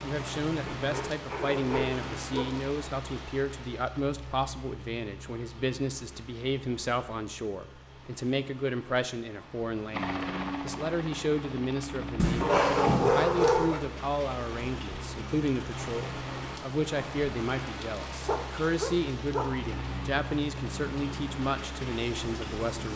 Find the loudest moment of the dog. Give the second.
13 s.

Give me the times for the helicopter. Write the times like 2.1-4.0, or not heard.
9.9-12.9, 19.4-22.9.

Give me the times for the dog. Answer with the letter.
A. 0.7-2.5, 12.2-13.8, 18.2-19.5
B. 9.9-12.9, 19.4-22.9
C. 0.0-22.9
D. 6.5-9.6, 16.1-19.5
A.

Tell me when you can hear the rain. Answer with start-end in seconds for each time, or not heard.
0.0-22.9.